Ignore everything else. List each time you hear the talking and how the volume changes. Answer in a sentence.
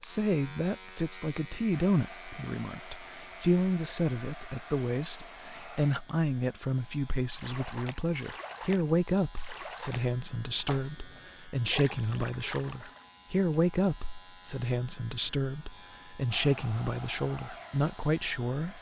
The talking can be heard from 0.0 to 18.7 s, at a steady volume.